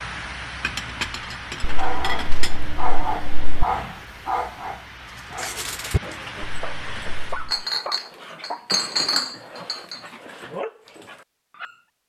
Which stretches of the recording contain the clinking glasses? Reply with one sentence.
You can hear the clinking glasses from 0.6 to 2.7 s and from 7.5 to 10.1 s.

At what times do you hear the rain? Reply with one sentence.
The rain can be heard from 0.0 to 7.5 s.